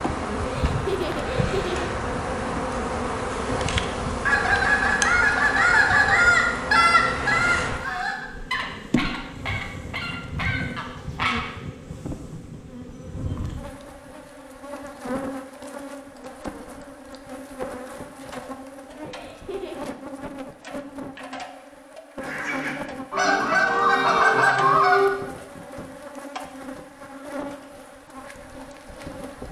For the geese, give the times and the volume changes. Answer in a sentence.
The geese can be heard from 4.2 to 11.4 s, getting quieter; and briefly from 22.2 to 25.1 s.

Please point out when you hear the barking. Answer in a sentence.
You can't hear the barking here.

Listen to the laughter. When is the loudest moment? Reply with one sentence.
The volume of the laughter peaks at 1 second.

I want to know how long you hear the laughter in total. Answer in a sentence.
You can hear the laughter for 2 seconds altogether.